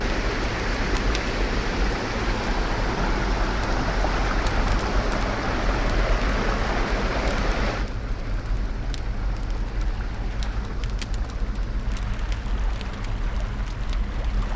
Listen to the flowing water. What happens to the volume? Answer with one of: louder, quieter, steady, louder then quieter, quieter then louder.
quieter.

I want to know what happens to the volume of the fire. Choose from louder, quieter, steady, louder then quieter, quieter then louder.
steady.